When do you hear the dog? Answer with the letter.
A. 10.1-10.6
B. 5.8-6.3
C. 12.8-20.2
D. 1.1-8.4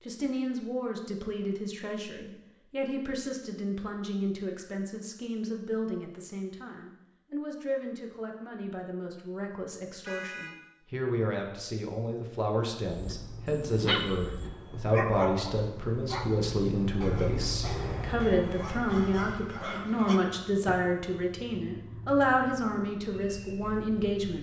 C.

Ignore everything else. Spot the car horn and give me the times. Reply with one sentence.
You can hear the car horn from 10.1 to 10.6 s.